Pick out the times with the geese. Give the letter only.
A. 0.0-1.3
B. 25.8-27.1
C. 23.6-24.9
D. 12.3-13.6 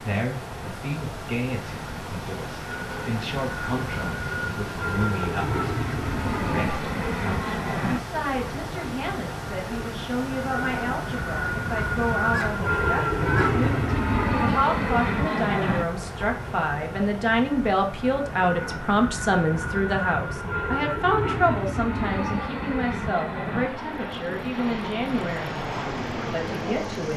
D.